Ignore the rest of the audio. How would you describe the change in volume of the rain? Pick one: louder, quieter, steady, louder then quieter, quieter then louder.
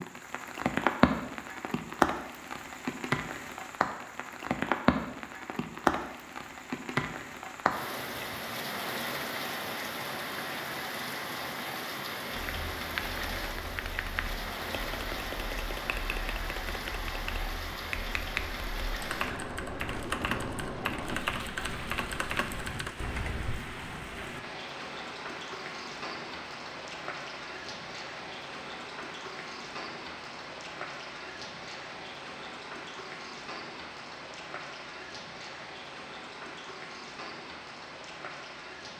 quieter.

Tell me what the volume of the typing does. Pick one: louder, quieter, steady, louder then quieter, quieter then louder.
louder.